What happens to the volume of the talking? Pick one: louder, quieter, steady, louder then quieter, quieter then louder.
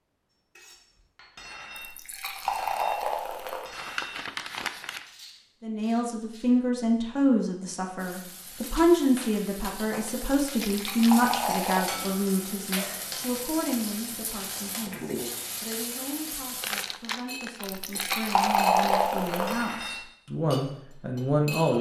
quieter then louder.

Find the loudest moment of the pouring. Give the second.
19 s.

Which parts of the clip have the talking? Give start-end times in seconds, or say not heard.
5.6-21.7.